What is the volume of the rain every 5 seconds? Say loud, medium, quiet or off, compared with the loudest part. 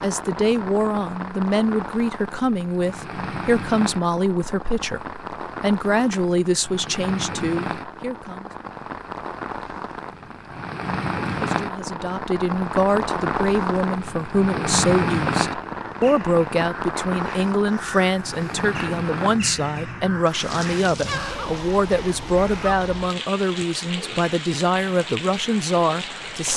medium, medium, loud, loud, medium, medium.